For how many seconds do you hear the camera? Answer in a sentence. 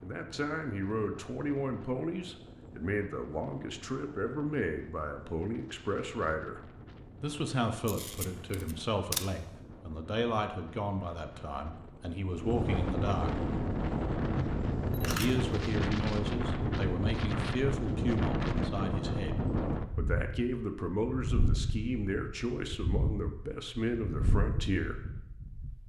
The camera can be heard for 2 seconds in total.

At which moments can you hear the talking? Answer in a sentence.
The talking can be heard from 0.0 to 6.6 s, from 7.2 to 13.4 s and from 15.0 to 25.0 s.